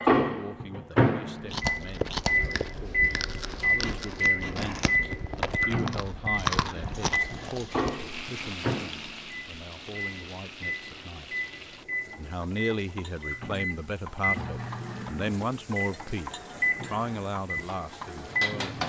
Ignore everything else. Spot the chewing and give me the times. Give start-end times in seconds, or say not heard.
1.4-8.0.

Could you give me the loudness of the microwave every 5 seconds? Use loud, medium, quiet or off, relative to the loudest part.
loud, medium, medium, medium.